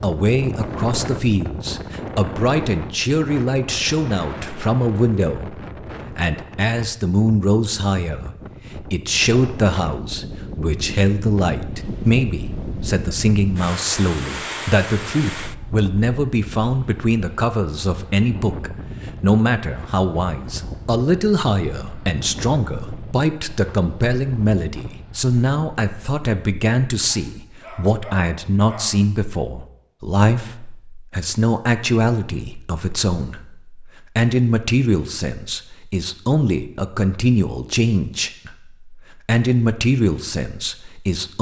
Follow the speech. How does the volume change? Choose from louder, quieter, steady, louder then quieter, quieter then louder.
steady.